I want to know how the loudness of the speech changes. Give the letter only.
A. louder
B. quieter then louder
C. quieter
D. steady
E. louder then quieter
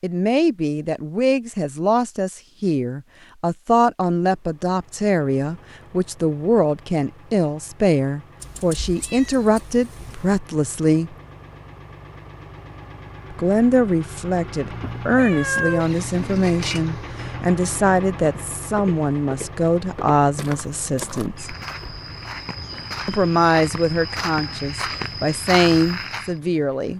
D.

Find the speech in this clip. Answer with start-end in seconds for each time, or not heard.
0.0-11.2, 13.3-21.6, 23.1-26.9.